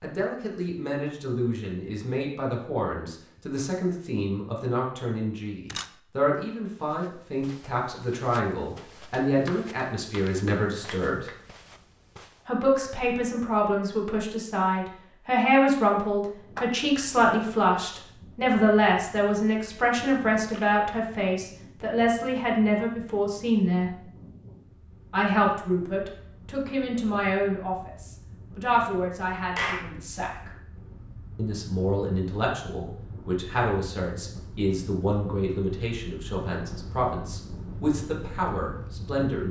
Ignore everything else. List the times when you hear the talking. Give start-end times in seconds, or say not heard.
0.0-11.3, 12.4-24.0, 25.1-30.5, 31.4-39.4.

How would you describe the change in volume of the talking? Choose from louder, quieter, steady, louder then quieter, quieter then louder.
louder then quieter.